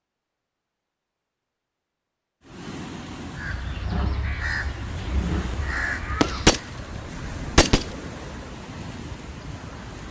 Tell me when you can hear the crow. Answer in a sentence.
The crow can be heard from 3.4 to 6.7 s.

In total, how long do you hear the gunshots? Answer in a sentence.
You can hear the gunshots for 2 seconds altogether.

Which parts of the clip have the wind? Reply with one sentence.
The wind can be heard from 2.4 to 10.0 s.